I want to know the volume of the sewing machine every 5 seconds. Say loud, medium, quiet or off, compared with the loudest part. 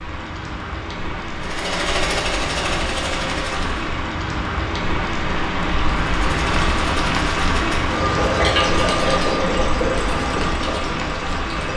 loud, loud, medium.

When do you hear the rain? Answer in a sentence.
You can hear the rain from 0.0 to 11.7 s.